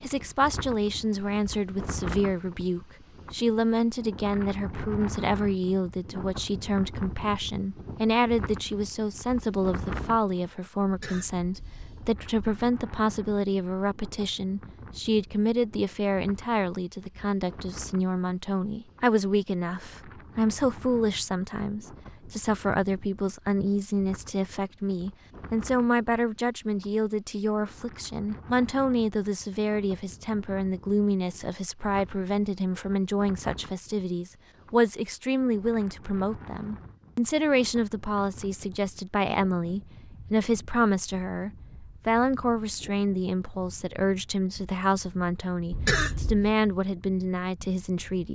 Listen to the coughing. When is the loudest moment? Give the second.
46 s.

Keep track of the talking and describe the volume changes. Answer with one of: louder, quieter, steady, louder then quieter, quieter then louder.
steady.